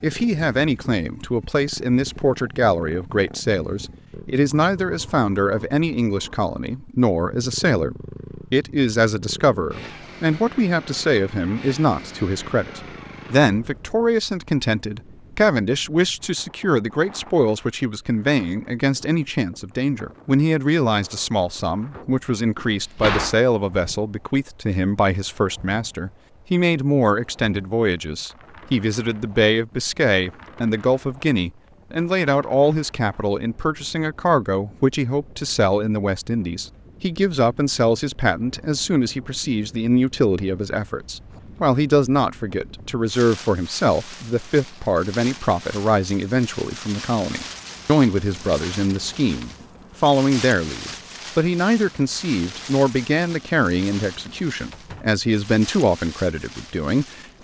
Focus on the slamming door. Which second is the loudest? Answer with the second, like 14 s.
23 s.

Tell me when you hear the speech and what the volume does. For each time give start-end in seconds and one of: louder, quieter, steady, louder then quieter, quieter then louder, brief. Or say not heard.
0.0-57.3 steady.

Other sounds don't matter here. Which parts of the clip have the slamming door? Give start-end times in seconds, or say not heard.
22.6-23.4, 54.7-55.2.